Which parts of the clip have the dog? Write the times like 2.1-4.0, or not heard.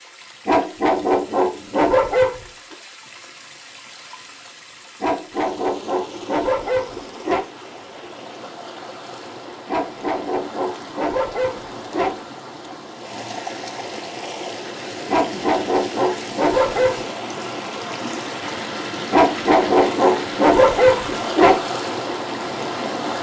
0.5-2.4, 5.0-7.5, 9.7-12.2, 15.1-17.0, 19.1-21.6.